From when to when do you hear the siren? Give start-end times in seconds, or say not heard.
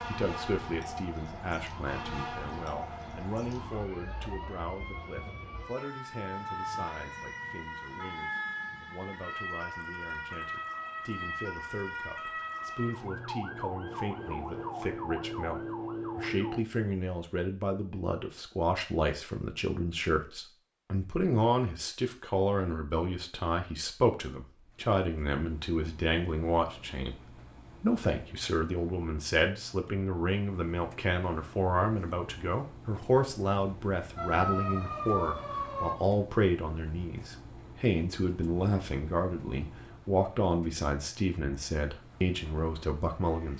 0.0-16.6, 34.1-36.0.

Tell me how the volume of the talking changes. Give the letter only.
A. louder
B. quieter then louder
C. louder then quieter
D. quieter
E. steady
A.